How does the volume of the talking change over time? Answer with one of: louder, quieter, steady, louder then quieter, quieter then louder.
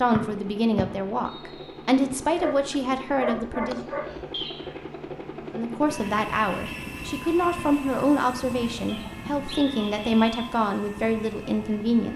steady.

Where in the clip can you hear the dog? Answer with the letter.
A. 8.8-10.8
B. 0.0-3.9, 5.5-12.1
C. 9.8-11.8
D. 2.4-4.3
D.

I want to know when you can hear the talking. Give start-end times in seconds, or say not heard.
0.0-3.9, 5.5-12.1.